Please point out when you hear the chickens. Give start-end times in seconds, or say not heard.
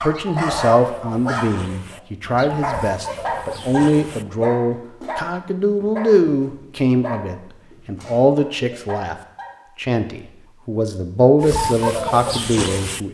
0.0-4.2, 11.4-13.0.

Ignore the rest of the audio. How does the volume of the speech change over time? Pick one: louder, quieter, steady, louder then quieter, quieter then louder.
steady.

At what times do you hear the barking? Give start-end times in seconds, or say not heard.
0.0-9.6.